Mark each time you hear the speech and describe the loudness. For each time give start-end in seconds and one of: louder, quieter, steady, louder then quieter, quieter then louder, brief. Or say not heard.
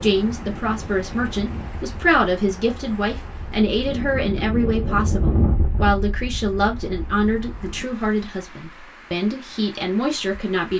0.0-10.7 steady.